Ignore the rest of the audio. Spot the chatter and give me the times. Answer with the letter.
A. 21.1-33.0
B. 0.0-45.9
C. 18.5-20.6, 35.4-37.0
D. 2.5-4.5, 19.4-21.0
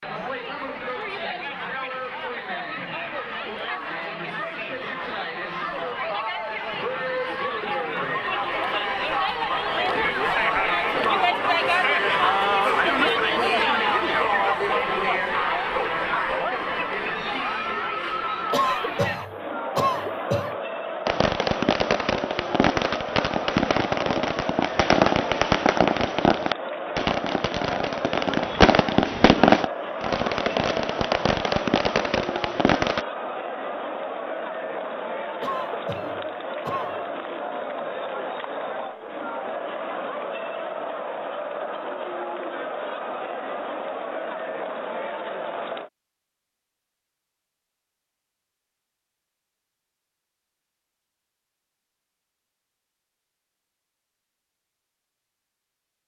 B.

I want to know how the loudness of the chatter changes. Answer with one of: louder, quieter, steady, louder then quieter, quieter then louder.
louder then quieter.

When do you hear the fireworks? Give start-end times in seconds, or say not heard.
21.1-33.0.